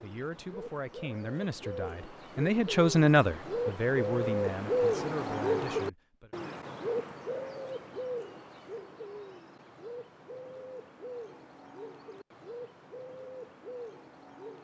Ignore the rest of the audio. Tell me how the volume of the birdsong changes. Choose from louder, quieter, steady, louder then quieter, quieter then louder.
louder then quieter.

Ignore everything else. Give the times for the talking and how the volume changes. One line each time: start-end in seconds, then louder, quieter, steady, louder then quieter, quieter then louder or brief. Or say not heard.
0.0-6.3 louder then quieter.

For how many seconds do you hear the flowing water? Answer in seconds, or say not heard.
not heard.